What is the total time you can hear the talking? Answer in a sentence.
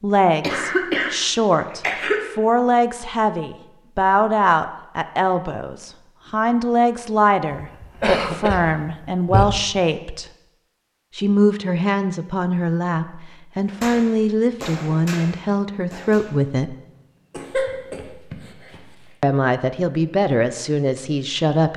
The talking can be heard for 18 seconds in total.